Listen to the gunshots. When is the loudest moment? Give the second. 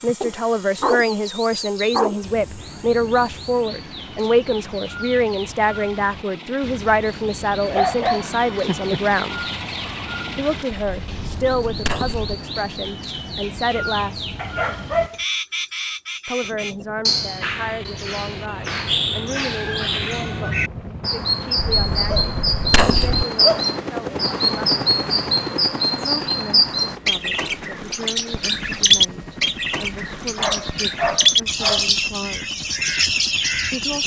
23 s.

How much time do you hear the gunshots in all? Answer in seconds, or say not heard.
3 s.